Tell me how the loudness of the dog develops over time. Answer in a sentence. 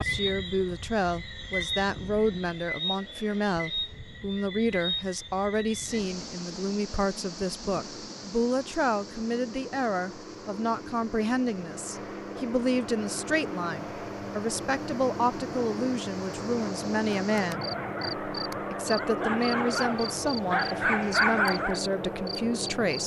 The loudness of the dog goes up.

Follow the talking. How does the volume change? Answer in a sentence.
The loudness of the talking stays about the same.